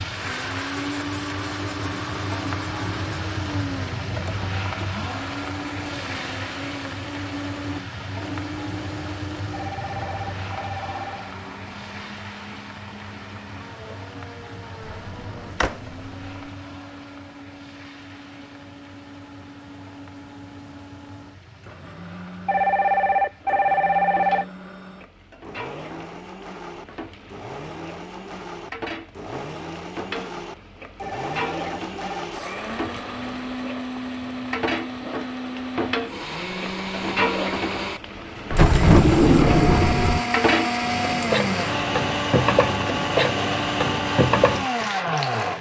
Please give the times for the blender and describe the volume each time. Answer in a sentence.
The blender can be heard from 0.0 to 45.5 s, getting quieter then louder.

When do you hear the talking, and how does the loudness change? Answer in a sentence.
The talking can't be heard in this clip.